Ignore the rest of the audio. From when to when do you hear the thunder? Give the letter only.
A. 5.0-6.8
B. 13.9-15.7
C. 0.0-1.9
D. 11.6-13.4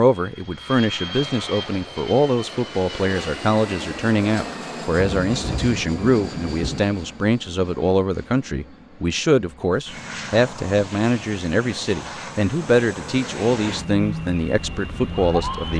A.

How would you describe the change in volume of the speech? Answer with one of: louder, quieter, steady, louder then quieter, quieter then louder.
steady.